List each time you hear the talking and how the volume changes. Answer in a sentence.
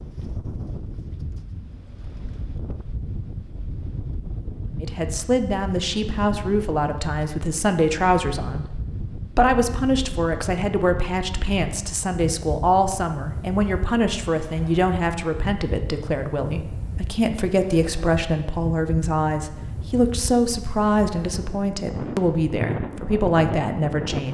You can hear the talking from 4.8 to 24.2 s, at a steady volume.